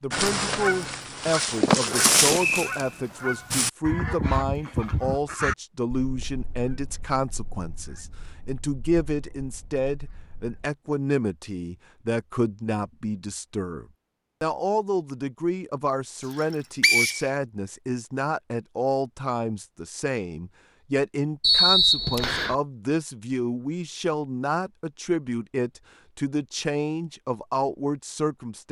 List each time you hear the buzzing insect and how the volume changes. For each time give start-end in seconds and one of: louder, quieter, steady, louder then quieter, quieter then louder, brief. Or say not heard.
not heard.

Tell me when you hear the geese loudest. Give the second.
2 s.